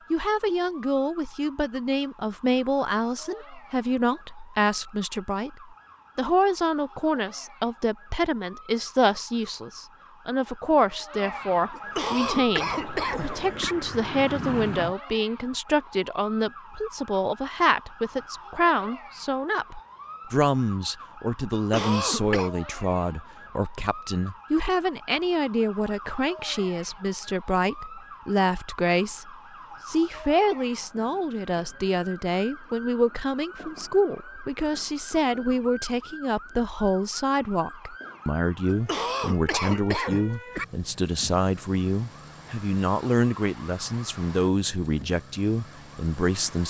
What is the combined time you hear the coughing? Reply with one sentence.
The coughing can be heard for 5 seconds in total.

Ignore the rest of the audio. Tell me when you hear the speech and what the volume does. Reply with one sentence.
The speech can be heard from 0.1 to 46.6 s, at a steady volume.